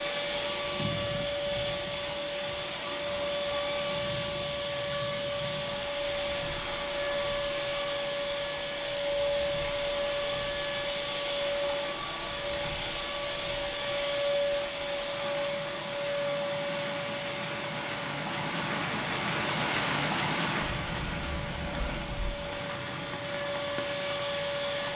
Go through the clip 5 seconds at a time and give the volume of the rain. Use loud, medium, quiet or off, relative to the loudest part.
medium, medium, medium, loud, loud.